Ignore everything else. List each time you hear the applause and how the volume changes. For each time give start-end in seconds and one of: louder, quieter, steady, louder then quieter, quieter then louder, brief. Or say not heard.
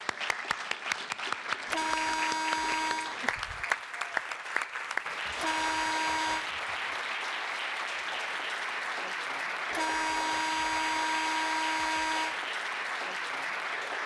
0.0-14.0 steady.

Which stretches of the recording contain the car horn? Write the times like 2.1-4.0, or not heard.
1.6-3.1, 5.3-6.5, 9.7-12.3.